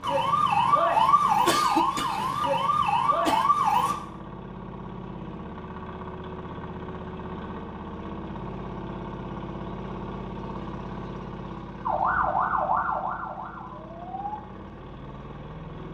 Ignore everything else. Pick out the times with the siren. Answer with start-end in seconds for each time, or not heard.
0.0-4.0, 11.8-14.3.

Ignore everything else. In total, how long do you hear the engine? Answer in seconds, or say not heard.
16 s.